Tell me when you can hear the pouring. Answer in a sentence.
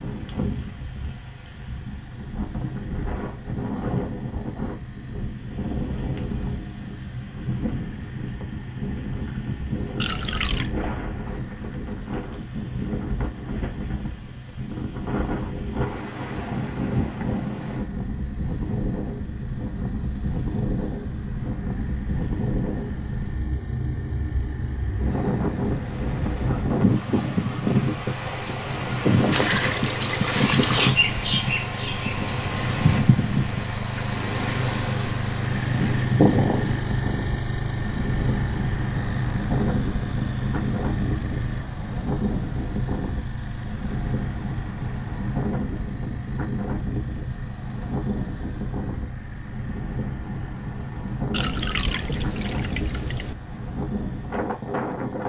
The pouring can be heard from 10.0 to 10.8 s, from 29.3 to 30.9 s and from 51.3 to 53.4 s.